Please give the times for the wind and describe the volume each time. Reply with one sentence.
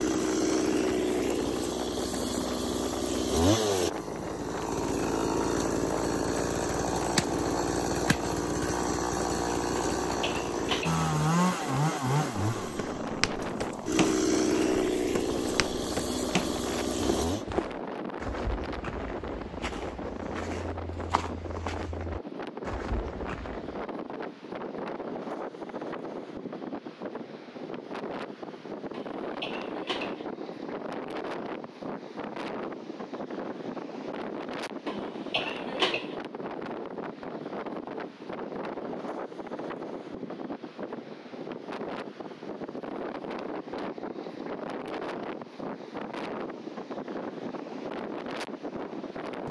The wind can be heard from 0.0 to 49.4 s, at a steady volume.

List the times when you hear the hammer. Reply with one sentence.
You can't hear the hammer here.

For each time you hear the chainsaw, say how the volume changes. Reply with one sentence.
You can hear the chainsaw from 0.0 to 17.4 s, at a steady volume.